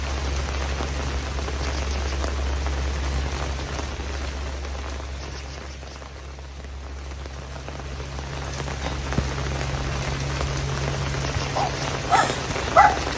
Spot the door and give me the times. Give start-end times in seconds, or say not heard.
not heard.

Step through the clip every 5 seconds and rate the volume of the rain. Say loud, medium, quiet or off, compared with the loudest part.
medium, medium, loud.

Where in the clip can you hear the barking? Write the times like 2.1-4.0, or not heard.
11.5-13.1.